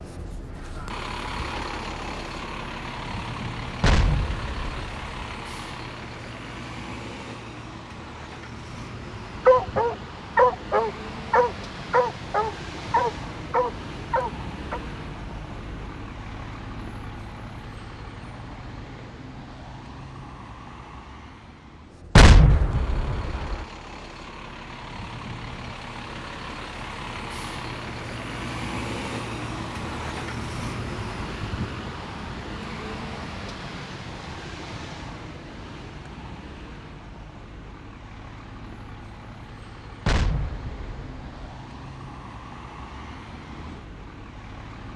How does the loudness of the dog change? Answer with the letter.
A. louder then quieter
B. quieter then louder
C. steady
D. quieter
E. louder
D.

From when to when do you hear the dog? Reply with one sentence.
You can hear the dog from 9.4 to 14.8 s.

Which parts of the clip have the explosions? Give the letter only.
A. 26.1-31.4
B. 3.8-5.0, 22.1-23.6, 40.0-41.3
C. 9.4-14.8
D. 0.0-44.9
B.